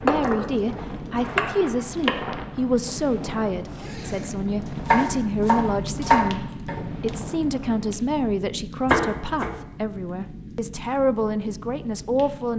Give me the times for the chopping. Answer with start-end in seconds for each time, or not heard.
0.1-0.5, 1.4-2.1, 4.8-6.8, 8.8-9.6.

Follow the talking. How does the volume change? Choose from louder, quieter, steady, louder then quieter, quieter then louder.
steady.